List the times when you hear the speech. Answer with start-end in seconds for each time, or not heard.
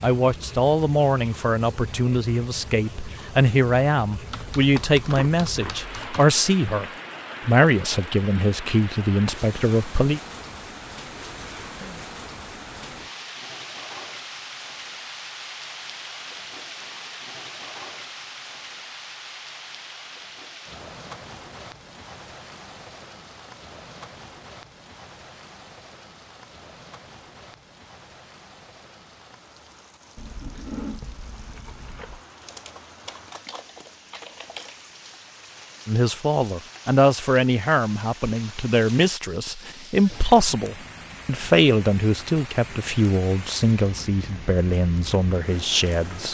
0.0-10.2, 35.9-46.2.